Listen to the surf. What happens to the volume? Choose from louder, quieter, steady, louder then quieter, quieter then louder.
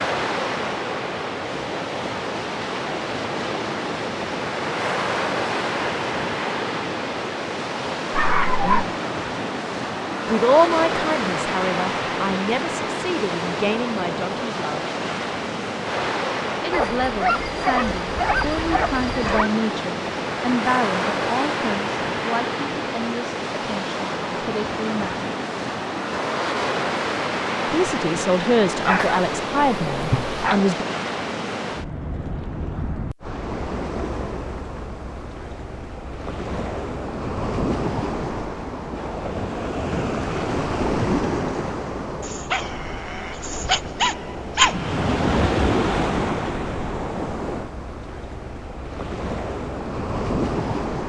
steady.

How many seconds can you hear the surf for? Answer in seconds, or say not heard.
51 s.